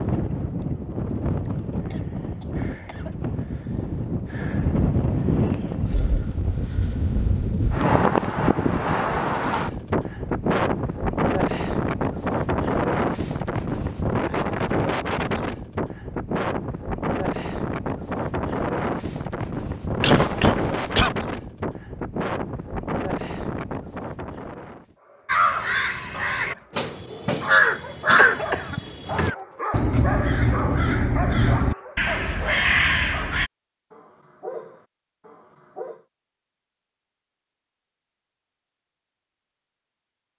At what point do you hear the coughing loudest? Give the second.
20 s.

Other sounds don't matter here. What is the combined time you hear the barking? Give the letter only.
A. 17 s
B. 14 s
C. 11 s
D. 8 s
C.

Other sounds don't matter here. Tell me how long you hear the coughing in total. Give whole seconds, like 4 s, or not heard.
4 s.